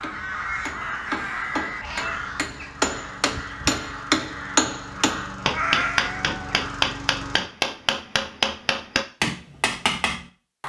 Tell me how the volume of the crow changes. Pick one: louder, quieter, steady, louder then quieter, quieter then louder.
quieter.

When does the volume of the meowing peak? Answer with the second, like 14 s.
6 s.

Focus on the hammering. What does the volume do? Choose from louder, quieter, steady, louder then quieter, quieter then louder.
louder.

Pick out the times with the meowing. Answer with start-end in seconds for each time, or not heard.
1.8-2.2, 5.5-6.6.